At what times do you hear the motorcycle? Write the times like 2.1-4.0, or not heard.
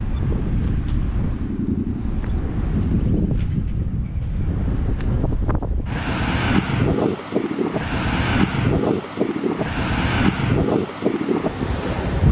0.0-2.5.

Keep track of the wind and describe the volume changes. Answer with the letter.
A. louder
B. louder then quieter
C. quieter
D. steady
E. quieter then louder
A.